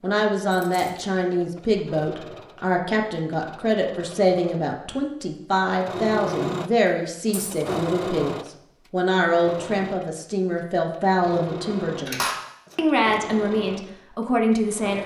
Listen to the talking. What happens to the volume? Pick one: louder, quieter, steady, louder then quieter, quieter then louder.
steady.